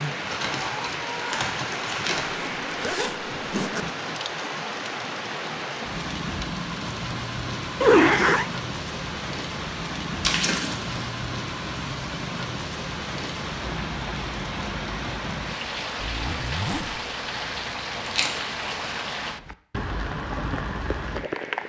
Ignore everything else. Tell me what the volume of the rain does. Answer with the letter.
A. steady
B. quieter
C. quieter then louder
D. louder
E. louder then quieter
A.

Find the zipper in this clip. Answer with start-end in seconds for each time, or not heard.
2.1-3.9, 7.8-8.4, 15.9-17.1.